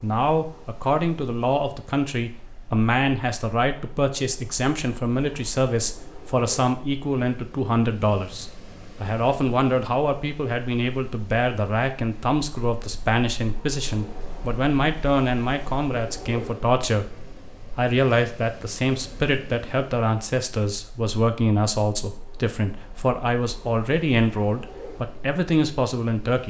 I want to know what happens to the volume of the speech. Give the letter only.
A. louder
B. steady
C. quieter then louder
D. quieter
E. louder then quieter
B.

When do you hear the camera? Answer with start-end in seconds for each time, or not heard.
not heard.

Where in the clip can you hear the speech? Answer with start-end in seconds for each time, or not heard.
0.0-17.1, 17.8-26.4.